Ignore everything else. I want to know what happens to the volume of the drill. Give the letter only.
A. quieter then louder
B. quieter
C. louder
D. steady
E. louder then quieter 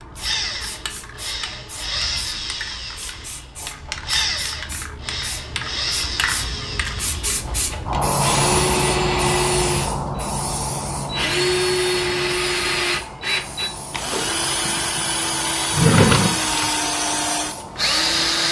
C.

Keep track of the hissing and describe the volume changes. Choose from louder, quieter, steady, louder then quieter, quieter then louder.
louder then quieter.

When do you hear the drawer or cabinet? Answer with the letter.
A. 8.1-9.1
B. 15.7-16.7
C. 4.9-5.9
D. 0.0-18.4
B.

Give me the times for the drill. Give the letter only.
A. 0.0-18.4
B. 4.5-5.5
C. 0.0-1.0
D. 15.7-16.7
A.